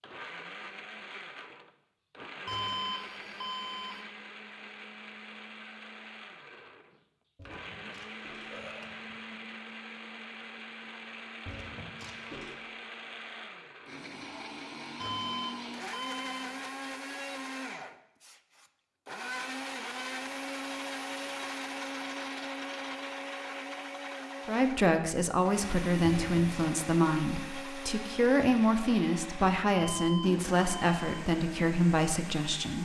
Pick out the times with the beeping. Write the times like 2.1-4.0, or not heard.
2.5-4.0, 15.0-16.6, 29.8-31.2.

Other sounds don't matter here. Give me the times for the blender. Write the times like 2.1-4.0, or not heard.
0.0-32.8.